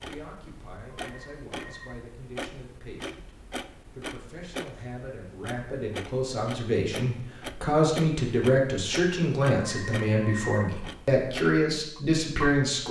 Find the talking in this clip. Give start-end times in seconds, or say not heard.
0.0-12.8.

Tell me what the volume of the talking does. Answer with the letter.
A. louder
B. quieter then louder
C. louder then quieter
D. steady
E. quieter
A.